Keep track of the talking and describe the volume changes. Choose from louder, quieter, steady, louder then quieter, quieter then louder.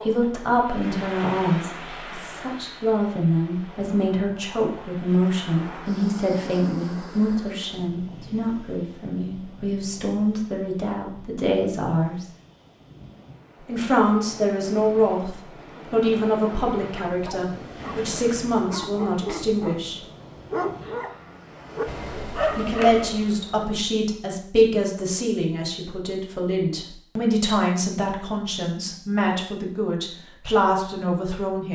steady.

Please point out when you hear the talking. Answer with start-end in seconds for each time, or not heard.
0.0-12.2, 13.7-20.0, 22.6-31.7.